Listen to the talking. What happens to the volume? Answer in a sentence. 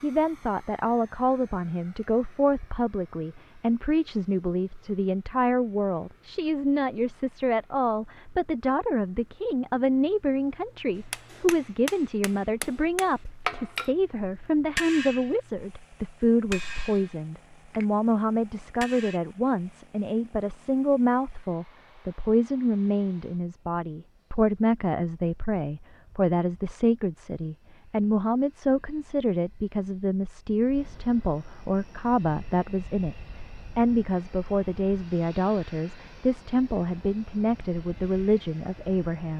The volume of the talking stays about the same.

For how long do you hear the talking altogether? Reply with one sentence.
The talking can be heard for 39 seconds in total.